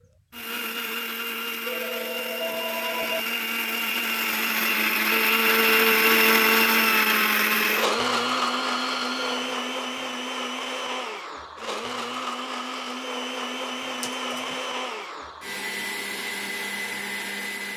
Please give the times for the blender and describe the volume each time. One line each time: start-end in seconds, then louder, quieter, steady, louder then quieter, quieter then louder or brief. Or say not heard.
0.0-17.7 louder then quieter.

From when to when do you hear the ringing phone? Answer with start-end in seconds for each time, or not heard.
1.6-3.2, 7.9-9.6, 14.0-14.6.